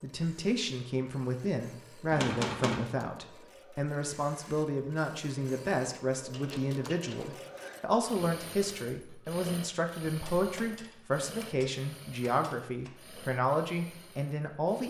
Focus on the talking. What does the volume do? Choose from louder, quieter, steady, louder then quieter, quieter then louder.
steady.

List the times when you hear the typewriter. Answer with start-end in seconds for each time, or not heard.
2.1-2.9, 6.3-7.8, 10.2-12.9.